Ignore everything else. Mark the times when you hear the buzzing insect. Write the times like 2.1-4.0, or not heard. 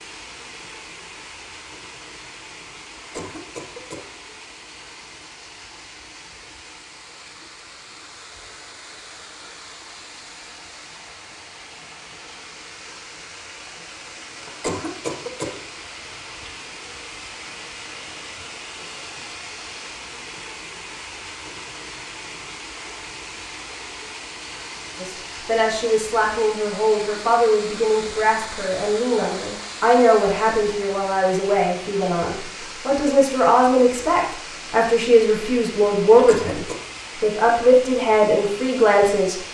not heard.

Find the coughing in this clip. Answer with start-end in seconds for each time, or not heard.
3.0-4.0, 14.4-15.6, 36.1-36.8.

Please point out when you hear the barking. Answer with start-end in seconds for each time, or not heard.
not heard.